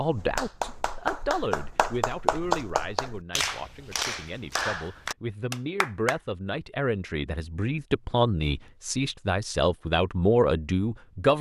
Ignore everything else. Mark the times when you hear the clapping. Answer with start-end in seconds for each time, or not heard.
0.0-6.2.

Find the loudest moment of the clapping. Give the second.
2 s.